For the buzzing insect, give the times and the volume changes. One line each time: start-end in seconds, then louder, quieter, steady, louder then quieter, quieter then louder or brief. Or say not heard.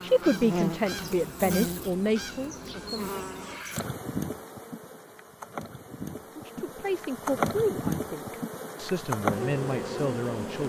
0.0-10.6 quieter then louder.